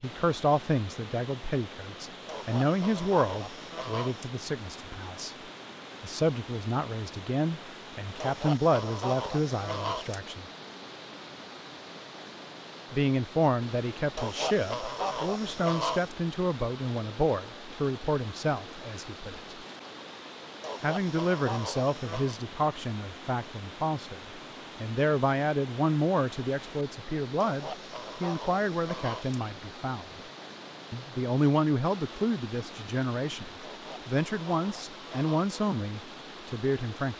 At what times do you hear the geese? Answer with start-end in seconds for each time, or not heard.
2.2-4.3, 8.2-10.2, 14.2-16.1, 20.6-22.4, 27.4-29.4, 33.6-35.4.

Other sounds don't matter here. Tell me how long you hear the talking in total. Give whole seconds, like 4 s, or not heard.
32 s.